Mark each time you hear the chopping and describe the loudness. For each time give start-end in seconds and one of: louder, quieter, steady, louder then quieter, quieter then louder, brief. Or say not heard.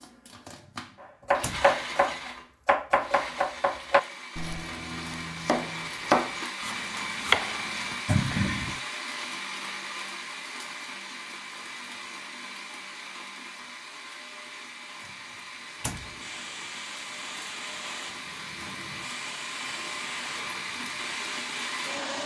1.3-8.3 quieter then louder.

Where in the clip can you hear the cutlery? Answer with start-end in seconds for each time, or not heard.
not heard.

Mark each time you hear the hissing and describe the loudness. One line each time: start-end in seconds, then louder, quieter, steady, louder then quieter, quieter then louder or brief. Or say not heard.
16.1-22.0 steady.